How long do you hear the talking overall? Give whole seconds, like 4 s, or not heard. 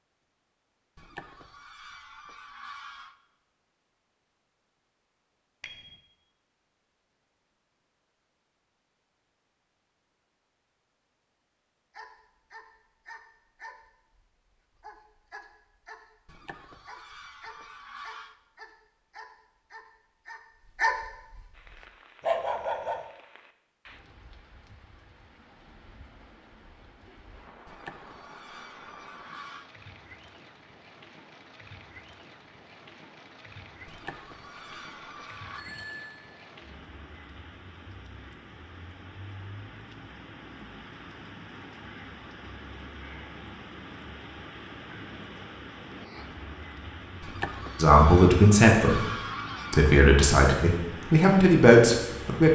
4 s.